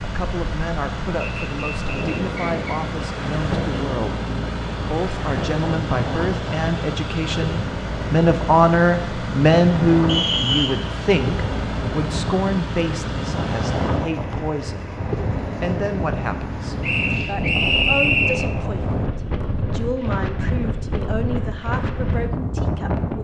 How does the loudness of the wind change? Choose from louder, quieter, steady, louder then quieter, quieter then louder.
steady.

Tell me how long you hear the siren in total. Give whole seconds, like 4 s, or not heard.
not heard.